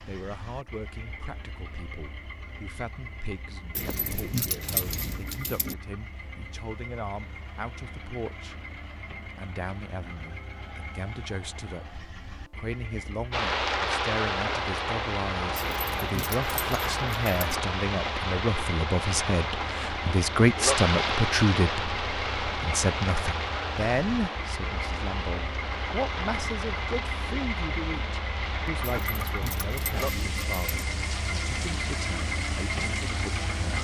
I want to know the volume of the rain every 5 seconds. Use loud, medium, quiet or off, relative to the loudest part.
off, off, loud, loud, loud, medium, medium.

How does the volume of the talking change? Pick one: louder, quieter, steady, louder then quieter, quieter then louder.
louder then quieter.